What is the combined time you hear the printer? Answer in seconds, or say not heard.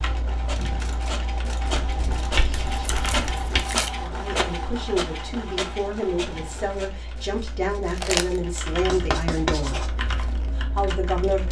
7 s.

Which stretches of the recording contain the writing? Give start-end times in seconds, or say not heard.
1.8-3.6, 8.8-9.9.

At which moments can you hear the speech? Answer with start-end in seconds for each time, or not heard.
4.0-11.4.